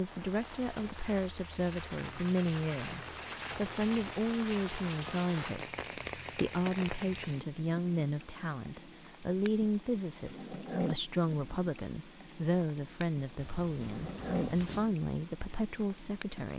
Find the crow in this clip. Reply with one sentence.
The crow can't be heard in this clip.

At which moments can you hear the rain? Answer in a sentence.
The rain can be heard from 0.0 to 16.5 s.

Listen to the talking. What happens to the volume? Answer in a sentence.
The loudness of the talking stays about the same.